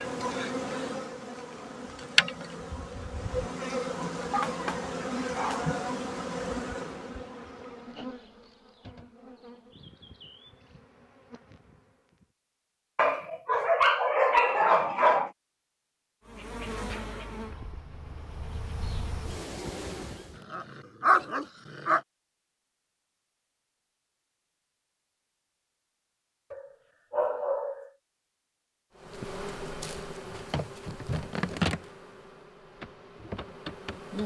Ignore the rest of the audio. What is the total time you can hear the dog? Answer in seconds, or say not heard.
8 s.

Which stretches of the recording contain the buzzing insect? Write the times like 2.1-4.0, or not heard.
0.0-12.2, 16.2-20.4, 28.9-34.2.